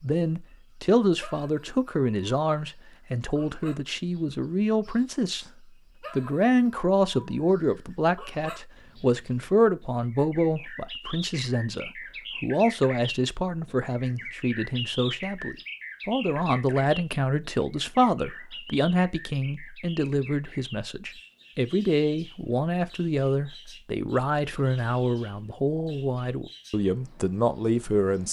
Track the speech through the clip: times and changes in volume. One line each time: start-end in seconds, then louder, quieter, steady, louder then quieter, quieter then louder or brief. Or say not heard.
0.0-28.2 steady.